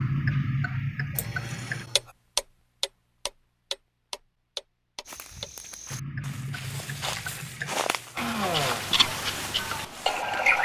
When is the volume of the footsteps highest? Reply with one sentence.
The volume of the footsteps peaks at 8 seconds.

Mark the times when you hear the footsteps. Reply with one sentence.
You can hear the footsteps from 5.0 to 10.2 s.